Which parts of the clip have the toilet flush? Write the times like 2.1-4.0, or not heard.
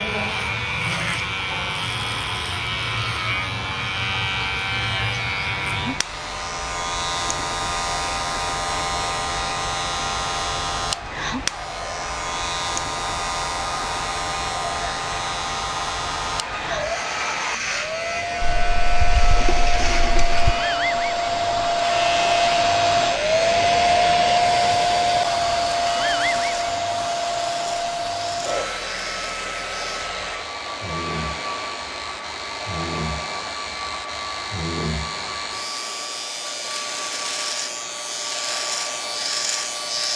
18.4-20.6.